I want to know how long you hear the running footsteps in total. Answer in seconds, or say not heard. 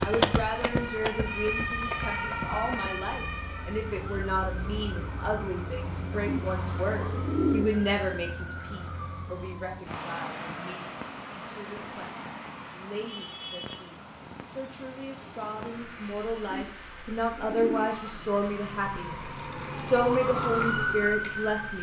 3 s.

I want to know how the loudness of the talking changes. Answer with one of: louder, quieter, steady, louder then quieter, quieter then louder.
quieter then louder.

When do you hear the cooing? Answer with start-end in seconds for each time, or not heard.
6.2-7.8, 16.5-18.0.